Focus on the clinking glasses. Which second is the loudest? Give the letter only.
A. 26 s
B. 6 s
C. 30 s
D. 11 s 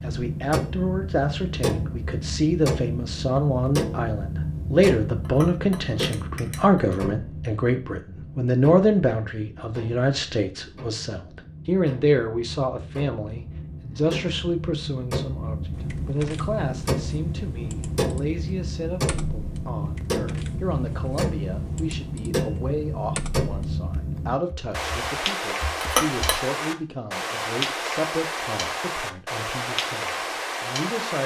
A.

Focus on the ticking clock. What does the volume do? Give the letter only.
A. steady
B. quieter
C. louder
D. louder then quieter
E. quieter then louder
E.